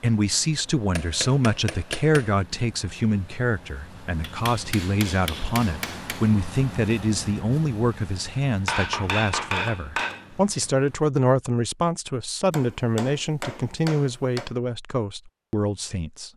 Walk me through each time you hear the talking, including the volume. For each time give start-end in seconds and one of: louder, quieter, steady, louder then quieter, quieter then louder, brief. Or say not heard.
0.0-16.3 steady.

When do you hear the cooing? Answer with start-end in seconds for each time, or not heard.
not heard.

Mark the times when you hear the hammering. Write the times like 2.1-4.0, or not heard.
0.9-2.4, 4.2-6.2, 8.7-10.7, 12.5-14.5.